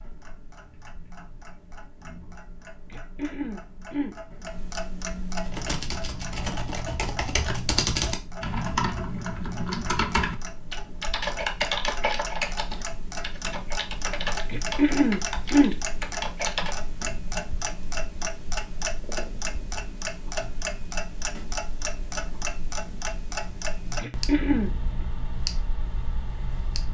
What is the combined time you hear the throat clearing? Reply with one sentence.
You can hear the throat clearing for 3 seconds altogether.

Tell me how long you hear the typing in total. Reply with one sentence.
You can hear the typing for 11 seconds altogether.